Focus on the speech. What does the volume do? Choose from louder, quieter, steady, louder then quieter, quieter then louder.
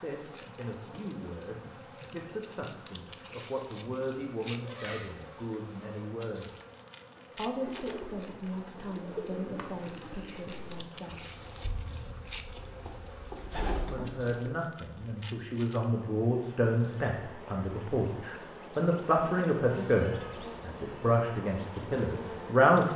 louder.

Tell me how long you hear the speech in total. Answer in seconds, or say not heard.
20 s.